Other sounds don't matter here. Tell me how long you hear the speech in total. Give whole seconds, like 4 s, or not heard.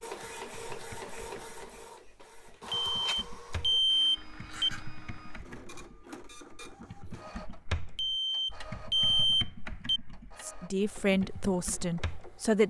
2 s.